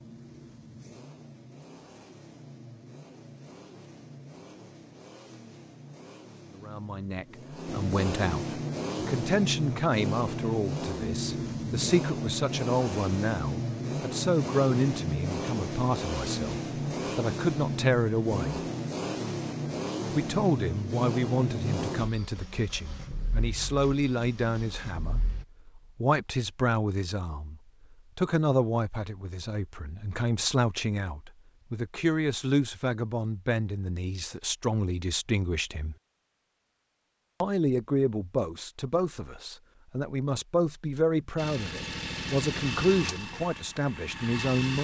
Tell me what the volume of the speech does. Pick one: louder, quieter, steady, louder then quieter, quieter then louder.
steady.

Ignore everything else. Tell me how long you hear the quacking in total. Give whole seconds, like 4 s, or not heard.
not heard.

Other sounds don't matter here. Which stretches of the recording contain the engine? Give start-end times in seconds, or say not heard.
0.0-25.4, 41.4-44.7.